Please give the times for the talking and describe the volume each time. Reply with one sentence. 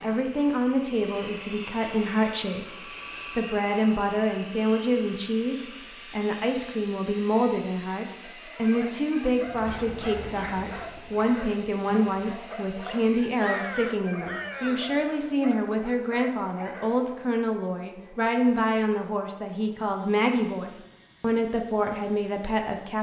The talking can be heard from 0.0 to 22.9 s, at a steady volume.